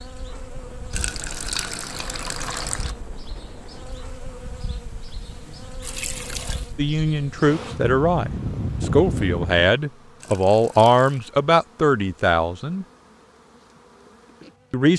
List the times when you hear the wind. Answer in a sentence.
You can hear the wind from 0.0 to 9.7 s.